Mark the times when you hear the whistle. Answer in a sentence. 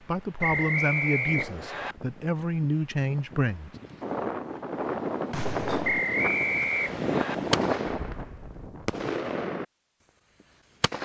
The whistle can be heard from 0.4 to 1.9 s and from 5.8 to 7.3 s.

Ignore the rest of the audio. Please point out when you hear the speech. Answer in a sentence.
The speech can be heard from 0.1 to 3.7 s.